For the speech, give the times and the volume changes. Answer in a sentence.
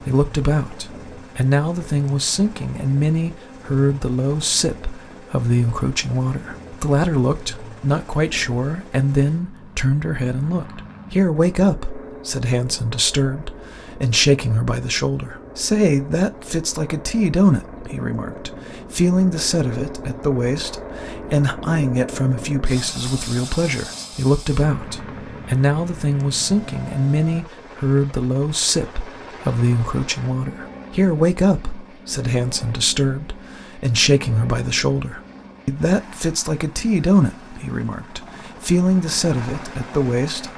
The speech can be heard from 0.0 to 40.5 s, at a steady volume.